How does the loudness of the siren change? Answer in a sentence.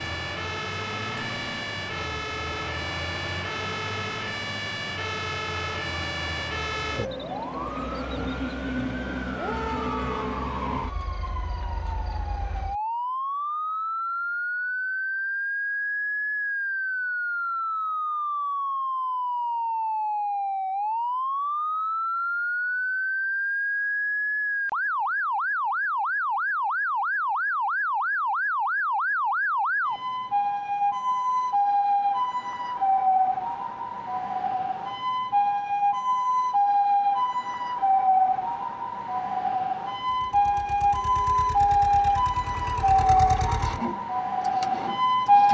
The loudness of the siren goes up.